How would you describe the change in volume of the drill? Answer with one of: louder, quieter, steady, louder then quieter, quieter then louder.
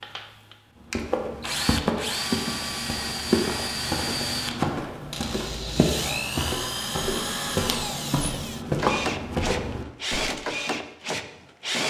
steady.